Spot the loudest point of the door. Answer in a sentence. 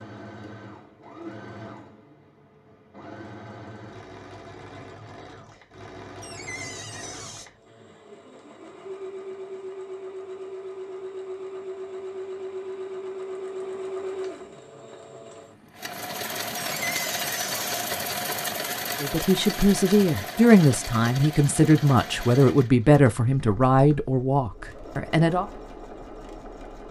The volume of the door peaks at 17 seconds.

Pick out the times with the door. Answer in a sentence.
The door can be heard from 6.2 to 7.5 s and from 16.6 to 17.9 s.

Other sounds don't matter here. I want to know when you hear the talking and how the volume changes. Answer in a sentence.
The talking can be heard from 19.0 to 25.4 s, getting quieter.